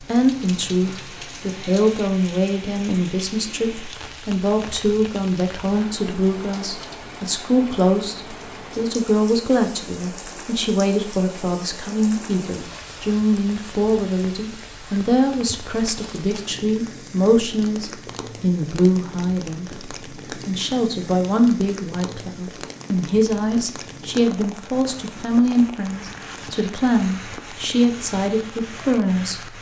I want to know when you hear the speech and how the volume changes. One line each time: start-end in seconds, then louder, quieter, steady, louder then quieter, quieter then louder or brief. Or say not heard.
0.0-29.5 steady.